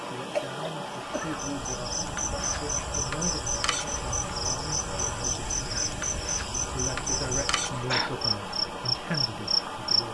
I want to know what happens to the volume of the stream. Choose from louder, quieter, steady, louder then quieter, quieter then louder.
steady.